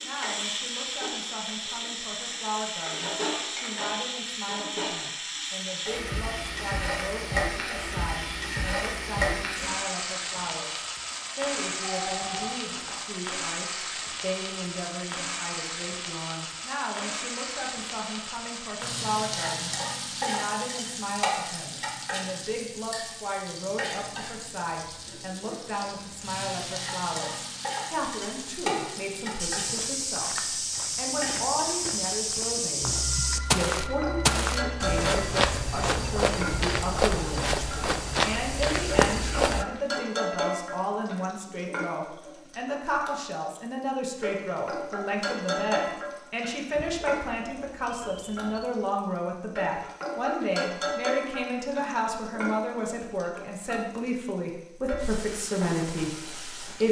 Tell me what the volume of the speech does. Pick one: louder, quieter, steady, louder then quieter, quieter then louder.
louder.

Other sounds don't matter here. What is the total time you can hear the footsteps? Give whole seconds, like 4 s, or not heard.
10 s.